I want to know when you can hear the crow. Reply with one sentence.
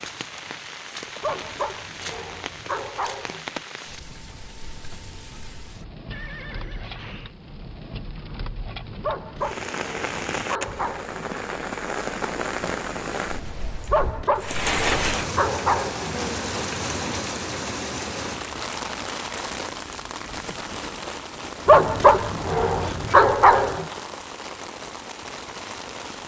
The crow can't be heard in this clip.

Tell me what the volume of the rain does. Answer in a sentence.
The loudness of the rain goes up, then down.